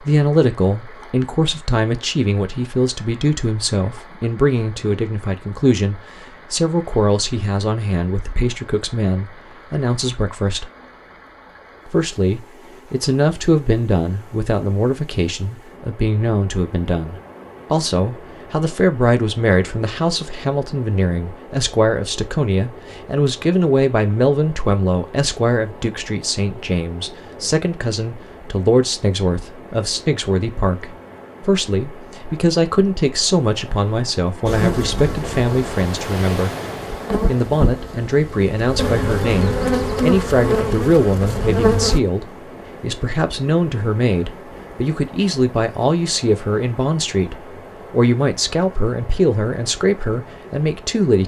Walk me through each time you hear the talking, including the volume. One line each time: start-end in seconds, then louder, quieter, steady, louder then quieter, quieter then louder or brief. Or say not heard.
0.0-10.7 steady
11.8-36.5 steady
37.2-51.2 steady.